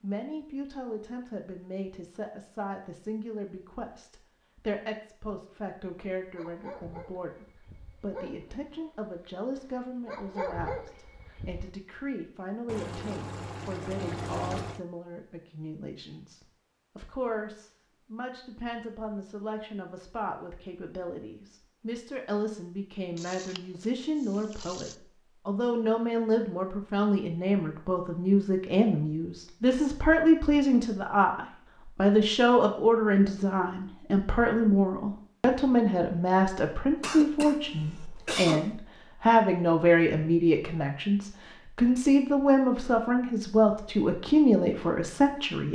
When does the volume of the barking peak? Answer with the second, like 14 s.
11 s.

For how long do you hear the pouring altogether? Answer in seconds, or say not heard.
4 s.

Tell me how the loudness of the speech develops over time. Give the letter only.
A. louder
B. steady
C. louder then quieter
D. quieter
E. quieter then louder
A.